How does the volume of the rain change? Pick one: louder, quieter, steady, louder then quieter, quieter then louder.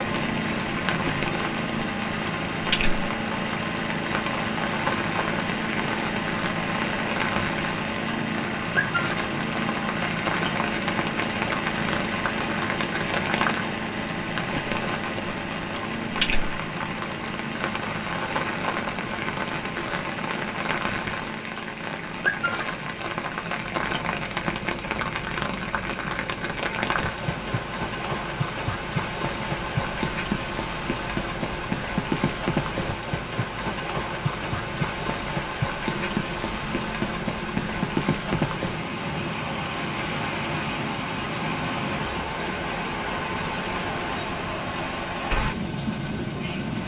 steady.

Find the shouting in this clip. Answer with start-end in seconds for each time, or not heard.
not heard.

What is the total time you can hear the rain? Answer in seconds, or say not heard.
47 s.